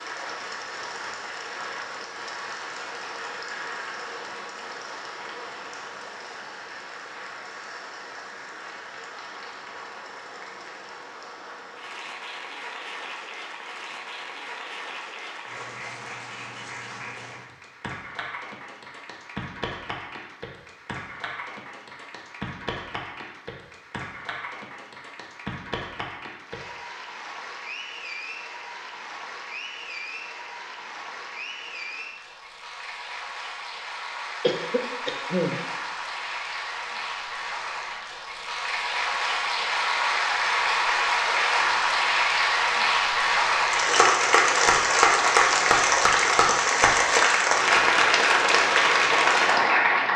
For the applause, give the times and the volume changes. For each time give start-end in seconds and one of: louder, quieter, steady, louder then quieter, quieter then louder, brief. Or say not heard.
0.0-50.1 louder.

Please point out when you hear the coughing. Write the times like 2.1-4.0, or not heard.
34.4-35.6.